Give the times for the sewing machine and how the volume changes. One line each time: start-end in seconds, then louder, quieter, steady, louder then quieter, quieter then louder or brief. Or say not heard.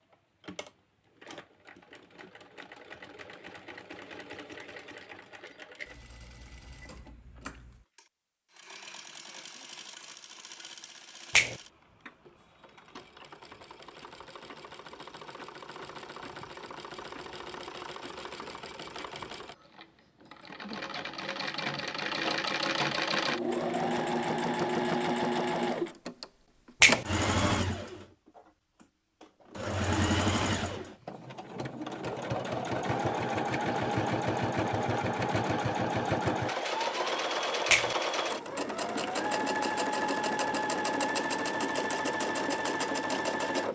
0.0-43.7 louder.